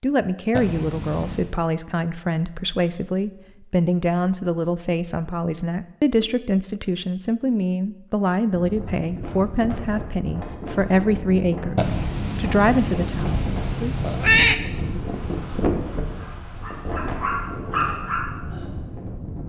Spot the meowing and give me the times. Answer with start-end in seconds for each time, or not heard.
0.5-1.6, 11.8-14.6.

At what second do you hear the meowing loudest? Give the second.
14 s.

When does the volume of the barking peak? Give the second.
18 s.